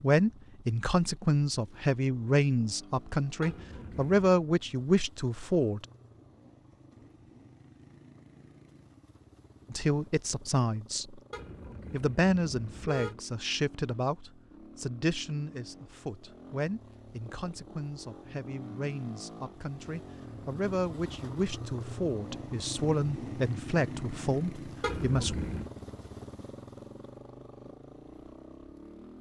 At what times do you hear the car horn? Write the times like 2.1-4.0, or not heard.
3.4-4.2, 11.3-13.2, 24.8-25.7.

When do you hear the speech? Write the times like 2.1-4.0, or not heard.
0.0-5.8, 9.7-11.2, 11.9-25.4.